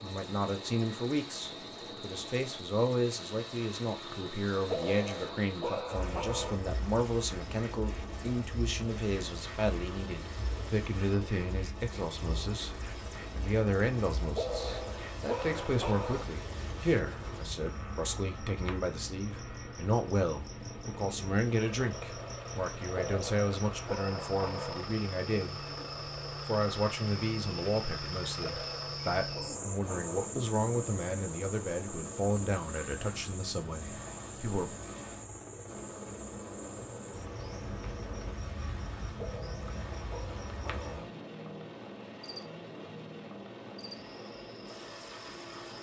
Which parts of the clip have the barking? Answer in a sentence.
You can hear the barking from 4.7 to 6.6 s, from 14.3 to 16.2 s, from 22.9 to 24.9 s, from 28.4 to 30.3 s and from 39.1 to 41.0 s.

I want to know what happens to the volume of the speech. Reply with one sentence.
The loudness of the speech stays about the same.